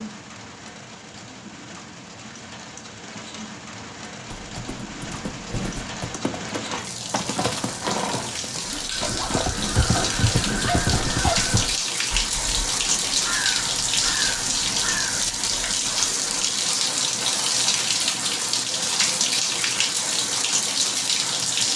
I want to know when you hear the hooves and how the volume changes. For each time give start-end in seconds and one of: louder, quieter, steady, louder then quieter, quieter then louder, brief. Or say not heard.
4.2-11.7 louder.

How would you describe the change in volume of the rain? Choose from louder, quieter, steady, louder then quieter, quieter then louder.
louder.